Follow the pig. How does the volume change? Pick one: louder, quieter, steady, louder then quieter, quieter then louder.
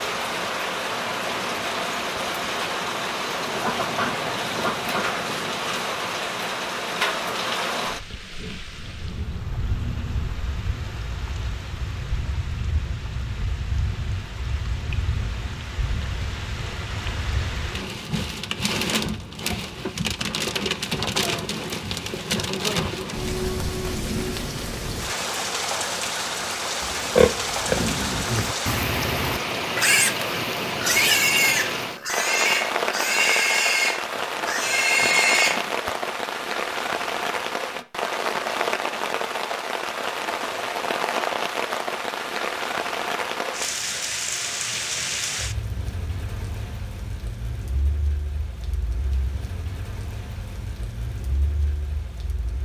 steady.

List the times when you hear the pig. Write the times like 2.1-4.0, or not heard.
26.8-35.9.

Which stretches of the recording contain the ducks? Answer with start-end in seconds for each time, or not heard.
3.5-5.2.